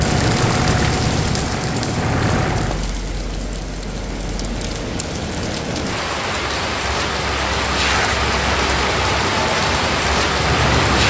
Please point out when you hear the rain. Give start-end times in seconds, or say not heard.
0.0-11.0.